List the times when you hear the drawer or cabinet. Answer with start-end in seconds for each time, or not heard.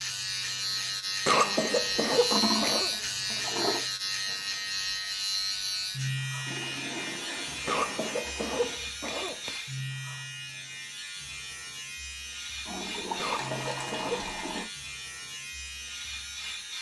not heard.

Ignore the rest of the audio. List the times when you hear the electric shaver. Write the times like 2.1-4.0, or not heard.
0.0-16.7.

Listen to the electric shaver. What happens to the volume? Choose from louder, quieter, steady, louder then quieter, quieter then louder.
quieter.